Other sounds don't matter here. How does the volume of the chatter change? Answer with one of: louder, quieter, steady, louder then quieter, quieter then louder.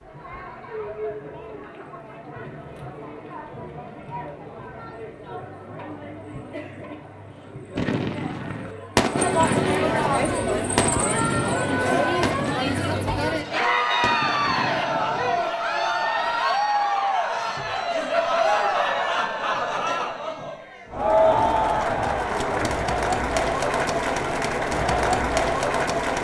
louder.